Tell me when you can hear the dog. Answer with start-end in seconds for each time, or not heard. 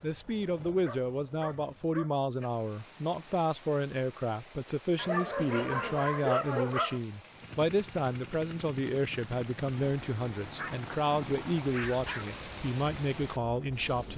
0.8-2.5, 5.0-7.0, 10.6-12.2.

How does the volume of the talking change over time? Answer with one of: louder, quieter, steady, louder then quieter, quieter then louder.
steady.